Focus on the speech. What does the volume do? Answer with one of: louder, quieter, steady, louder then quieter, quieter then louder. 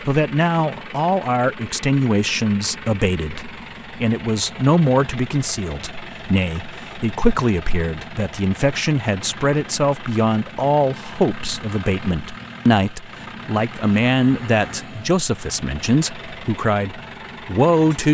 steady.